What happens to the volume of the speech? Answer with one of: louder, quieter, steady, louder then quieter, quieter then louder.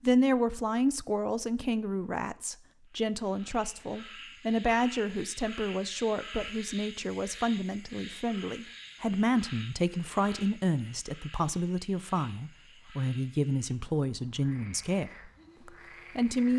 steady.